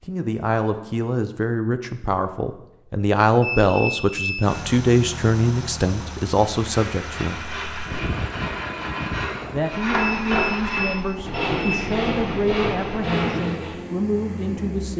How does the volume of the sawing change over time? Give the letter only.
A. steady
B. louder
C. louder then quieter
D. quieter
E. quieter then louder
B.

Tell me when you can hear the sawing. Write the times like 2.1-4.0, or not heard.
6.3-13.8.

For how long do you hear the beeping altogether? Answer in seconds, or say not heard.
3 s.